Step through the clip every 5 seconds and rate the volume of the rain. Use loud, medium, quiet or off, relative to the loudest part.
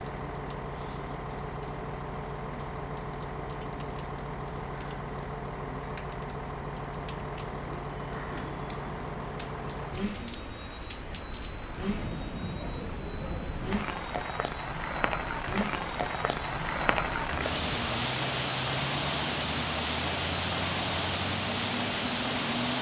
quiet, quiet, medium, loud, loud.